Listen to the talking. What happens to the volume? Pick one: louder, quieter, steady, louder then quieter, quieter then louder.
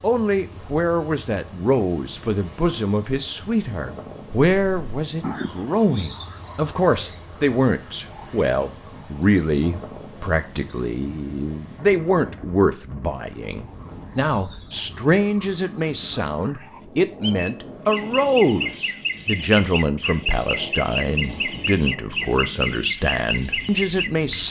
steady.